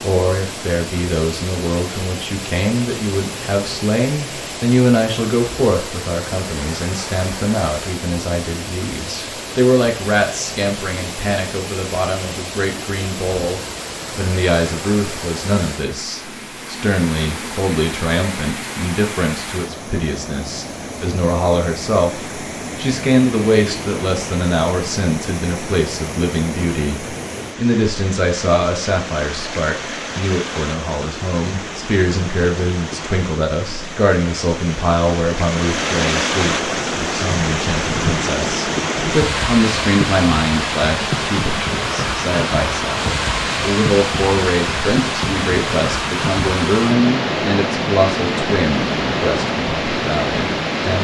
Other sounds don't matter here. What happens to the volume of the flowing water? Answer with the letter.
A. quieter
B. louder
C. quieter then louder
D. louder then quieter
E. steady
B.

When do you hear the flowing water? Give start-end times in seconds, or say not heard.
0.0-50.9.